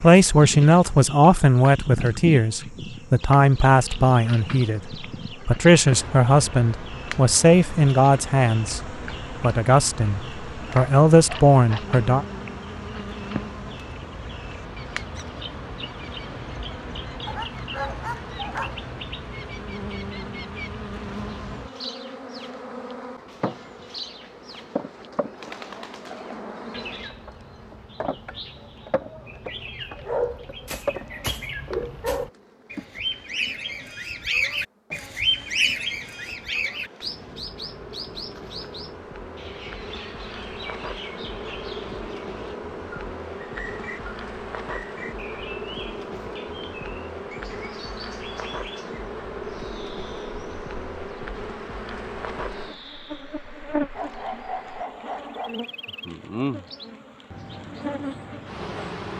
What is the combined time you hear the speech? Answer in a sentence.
You can hear the speech for 12 seconds altogether.